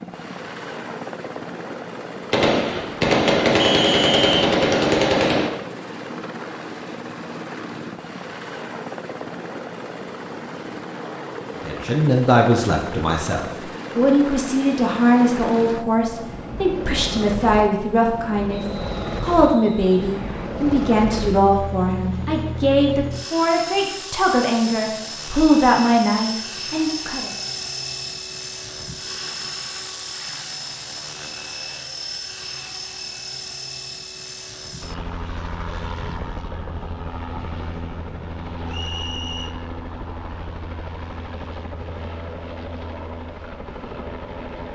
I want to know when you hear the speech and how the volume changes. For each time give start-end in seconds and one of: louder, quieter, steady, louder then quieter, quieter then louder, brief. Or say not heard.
11.6-27.3 steady.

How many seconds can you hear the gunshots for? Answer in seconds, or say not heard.
3 s.